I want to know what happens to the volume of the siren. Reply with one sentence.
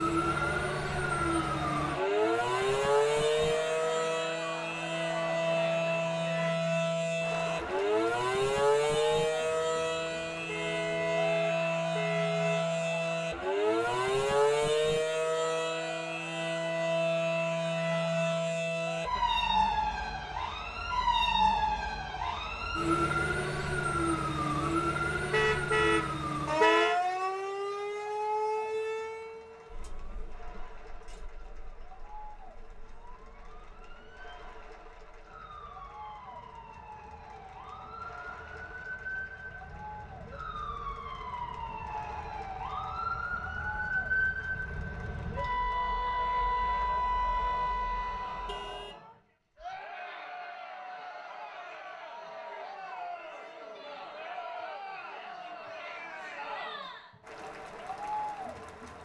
The loudness of the siren goes down, then up.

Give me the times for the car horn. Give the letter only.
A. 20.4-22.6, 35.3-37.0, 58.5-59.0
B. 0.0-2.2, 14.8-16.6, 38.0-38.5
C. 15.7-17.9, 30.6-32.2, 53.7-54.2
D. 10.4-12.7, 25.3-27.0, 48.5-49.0
D.